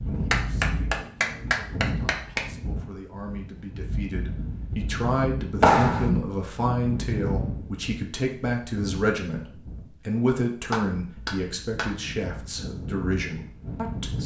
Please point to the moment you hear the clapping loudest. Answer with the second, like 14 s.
6 s.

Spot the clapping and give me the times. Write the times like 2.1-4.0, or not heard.
0.3-2.5, 5.6-6.1, 10.7-11.9.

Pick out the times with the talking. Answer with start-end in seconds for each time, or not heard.
0.0-14.2.